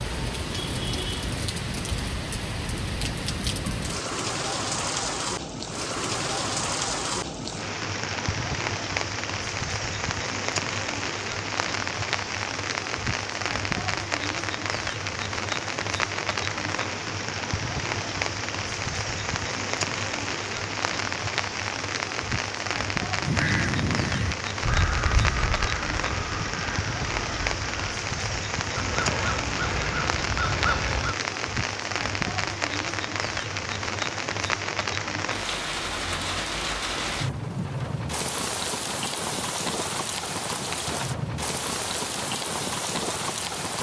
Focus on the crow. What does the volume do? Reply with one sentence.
The volume of the crow goes down, then up.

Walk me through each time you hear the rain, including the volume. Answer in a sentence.
The rain can be heard from 0.0 to 43.7 s, at a steady volume.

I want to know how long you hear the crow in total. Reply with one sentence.
The crow can be heard for 8 seconds in total.